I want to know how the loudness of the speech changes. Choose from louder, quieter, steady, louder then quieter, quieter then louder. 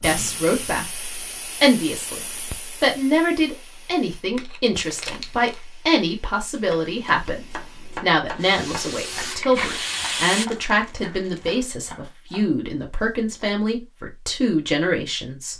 steady.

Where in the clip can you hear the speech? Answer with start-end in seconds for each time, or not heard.
0.0-15.5.